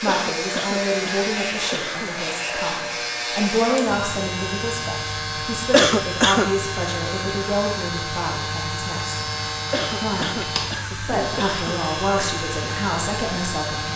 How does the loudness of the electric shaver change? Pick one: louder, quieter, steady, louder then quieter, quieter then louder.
steady.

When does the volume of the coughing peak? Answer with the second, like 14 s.
6 s.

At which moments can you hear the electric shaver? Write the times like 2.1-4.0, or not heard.
0.0-13.9.